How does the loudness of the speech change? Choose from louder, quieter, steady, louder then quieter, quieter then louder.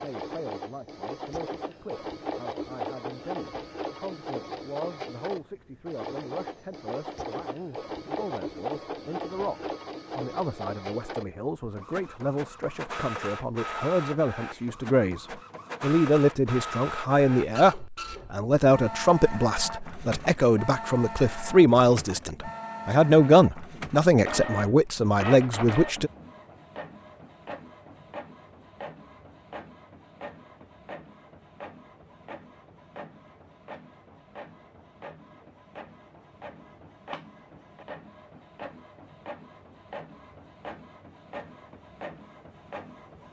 louder.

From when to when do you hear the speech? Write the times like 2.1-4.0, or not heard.
0.0-26.1.